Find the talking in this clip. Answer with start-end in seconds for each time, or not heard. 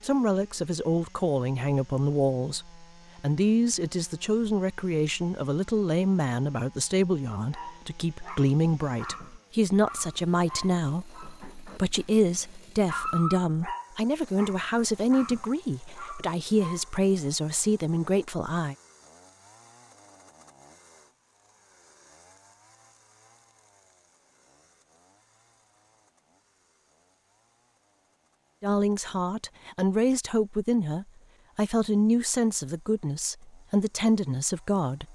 0.0-18.8, 28.6-35.0.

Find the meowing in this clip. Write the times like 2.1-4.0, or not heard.
not heard.